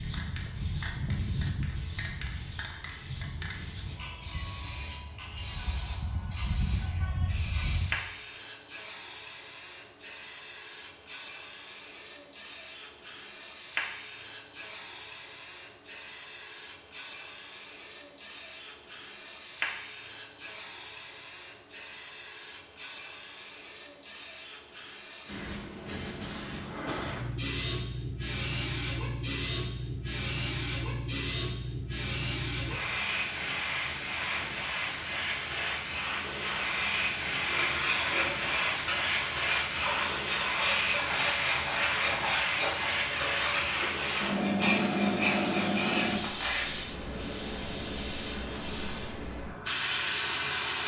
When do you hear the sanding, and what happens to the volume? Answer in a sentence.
The sanding can be heard from 37.4 to 46.6 s, at a steady volume.